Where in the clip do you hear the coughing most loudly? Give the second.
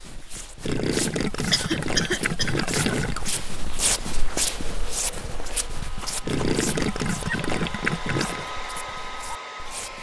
2 s.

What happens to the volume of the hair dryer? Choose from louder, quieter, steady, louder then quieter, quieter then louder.
louder.